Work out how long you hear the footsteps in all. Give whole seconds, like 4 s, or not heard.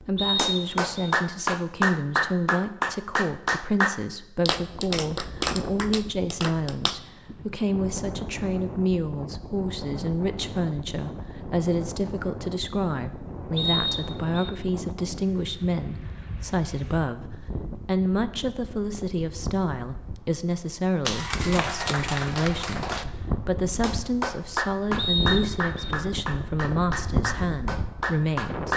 not heard.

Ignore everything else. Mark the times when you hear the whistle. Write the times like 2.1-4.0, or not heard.
0.1-1.1, 13.6-14.5, 24.9-25.9.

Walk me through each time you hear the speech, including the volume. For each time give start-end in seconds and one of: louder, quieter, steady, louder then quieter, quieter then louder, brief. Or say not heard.
0.0-28.7 steady.